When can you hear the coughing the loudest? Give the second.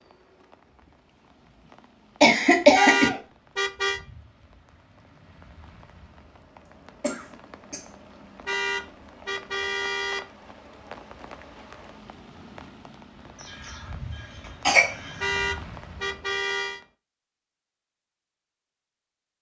3 s.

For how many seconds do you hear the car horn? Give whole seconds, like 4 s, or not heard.
5 s.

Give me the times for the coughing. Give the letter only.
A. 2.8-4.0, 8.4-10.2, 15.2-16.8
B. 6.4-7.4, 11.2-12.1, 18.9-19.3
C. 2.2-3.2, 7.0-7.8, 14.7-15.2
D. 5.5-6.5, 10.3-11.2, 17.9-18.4
C.